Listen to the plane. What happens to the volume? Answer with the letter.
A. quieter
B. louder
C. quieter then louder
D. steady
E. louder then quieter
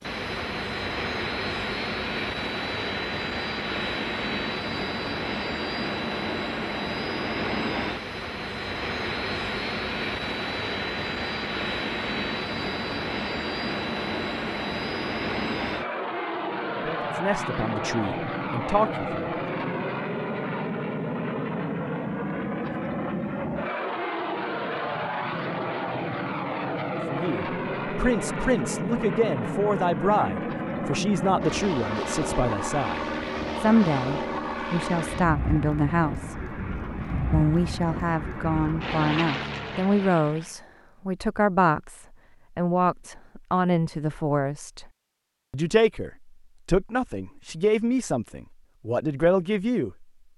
D.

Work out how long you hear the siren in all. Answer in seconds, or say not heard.
not heard.